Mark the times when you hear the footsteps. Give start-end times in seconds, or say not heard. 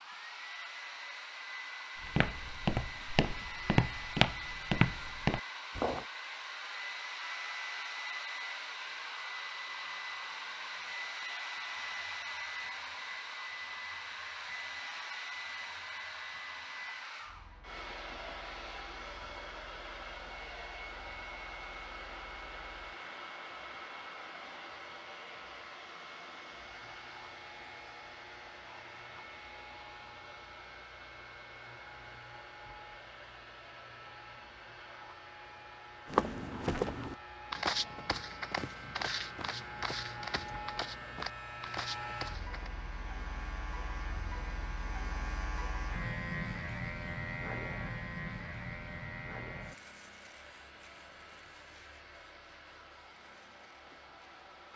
2.0-6.0, 36.0-42.7.